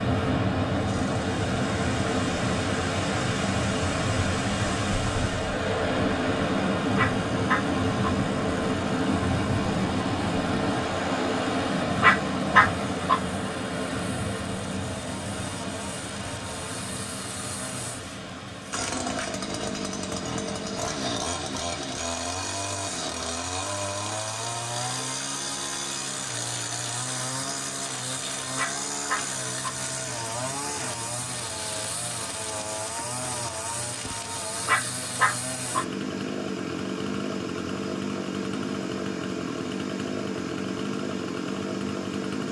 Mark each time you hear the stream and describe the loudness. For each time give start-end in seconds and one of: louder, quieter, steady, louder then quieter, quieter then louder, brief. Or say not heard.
0.0-42.4 quieter.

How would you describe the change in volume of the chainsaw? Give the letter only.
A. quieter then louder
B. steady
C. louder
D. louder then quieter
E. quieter
C.